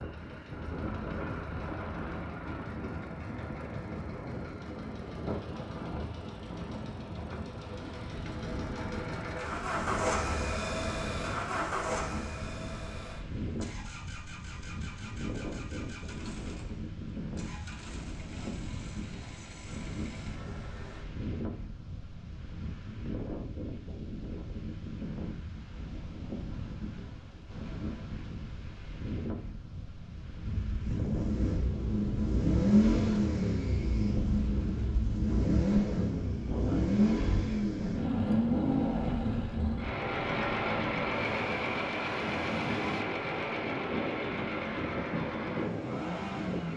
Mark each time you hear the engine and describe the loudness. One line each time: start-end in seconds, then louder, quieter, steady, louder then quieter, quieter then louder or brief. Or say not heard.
0.0-21.1 louder then quieter
30.4-46.7 quieter.